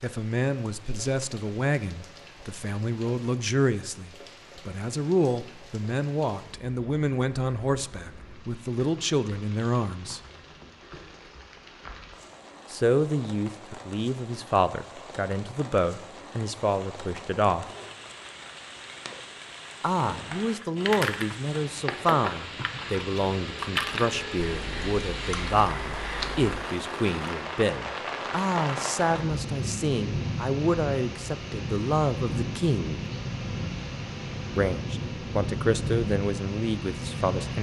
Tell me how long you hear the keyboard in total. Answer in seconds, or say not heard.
6 s.